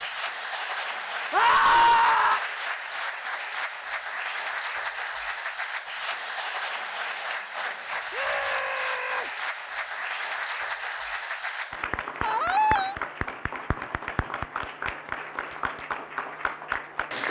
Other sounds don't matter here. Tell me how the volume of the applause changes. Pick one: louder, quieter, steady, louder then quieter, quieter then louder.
steady.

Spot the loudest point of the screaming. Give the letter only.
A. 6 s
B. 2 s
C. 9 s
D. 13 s
B.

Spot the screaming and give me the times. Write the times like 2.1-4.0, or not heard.
1.3-2.4, 8.1-9.2, 12.2-12.9.